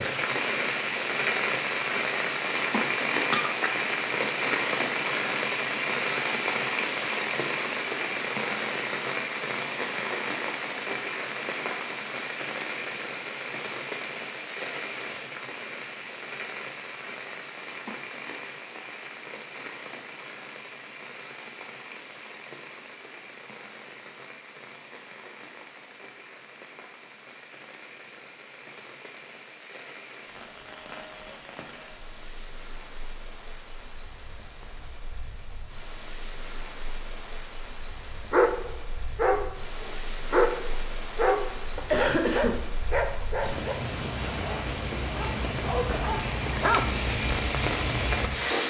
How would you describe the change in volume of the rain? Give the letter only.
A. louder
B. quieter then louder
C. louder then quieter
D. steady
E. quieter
B.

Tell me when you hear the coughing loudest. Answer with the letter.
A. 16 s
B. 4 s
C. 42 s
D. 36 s
C.